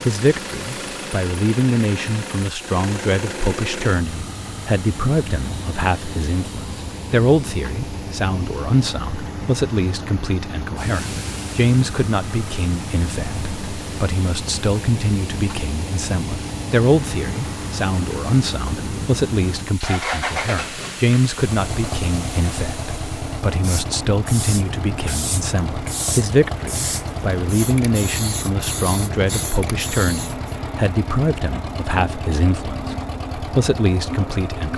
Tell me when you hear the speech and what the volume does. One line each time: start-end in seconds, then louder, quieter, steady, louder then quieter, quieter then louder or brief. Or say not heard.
0.1-34.7 steady.